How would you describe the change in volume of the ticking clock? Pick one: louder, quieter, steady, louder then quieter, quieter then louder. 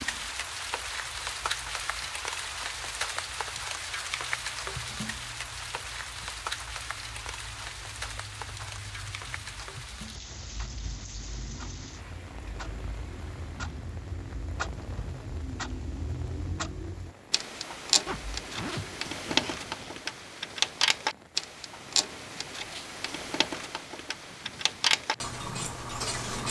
louder.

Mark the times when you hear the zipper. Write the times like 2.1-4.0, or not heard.
18.1-19.9.